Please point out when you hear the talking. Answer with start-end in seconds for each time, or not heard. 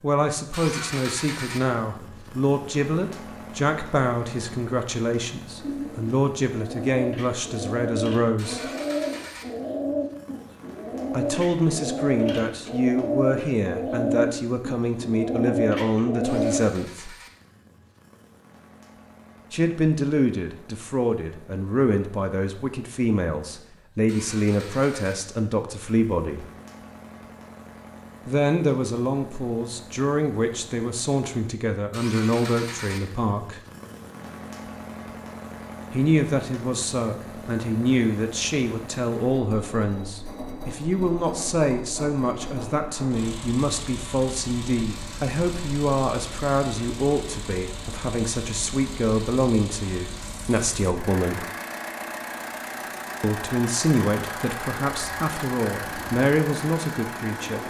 0.0-8.7, 11.1-17.1, 19.5-26.4, 28.2-33.6, 35.9-51.5, 53.2-57.6.